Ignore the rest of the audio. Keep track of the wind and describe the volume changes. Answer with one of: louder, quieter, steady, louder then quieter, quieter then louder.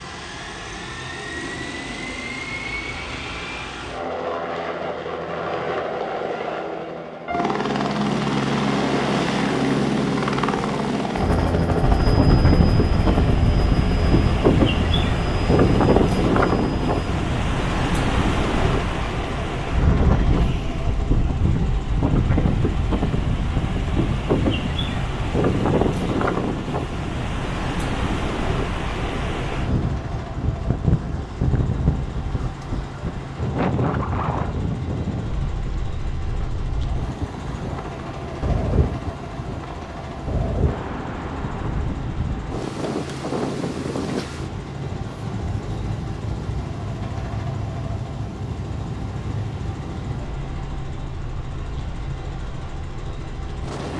quieter.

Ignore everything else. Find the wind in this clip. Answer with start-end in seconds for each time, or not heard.
11.8-53.9.